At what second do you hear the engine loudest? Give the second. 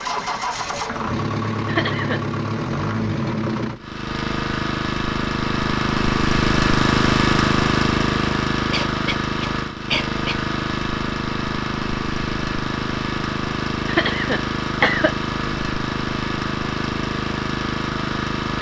7 s.